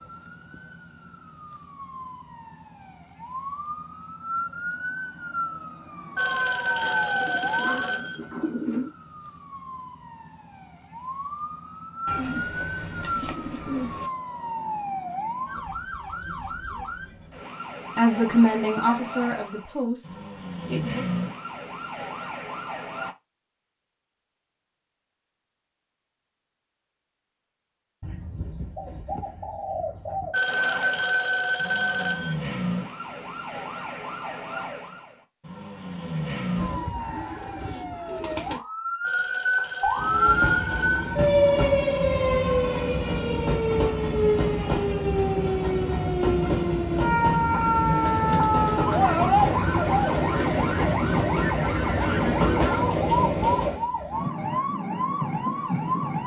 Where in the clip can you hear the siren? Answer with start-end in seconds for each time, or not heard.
0.0-23.1, 30.4-56.2.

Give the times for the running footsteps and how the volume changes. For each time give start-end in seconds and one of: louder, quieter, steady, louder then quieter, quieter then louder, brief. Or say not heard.
not heard.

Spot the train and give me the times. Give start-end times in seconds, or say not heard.
40.0-53.9.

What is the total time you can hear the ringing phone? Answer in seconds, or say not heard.
6 s.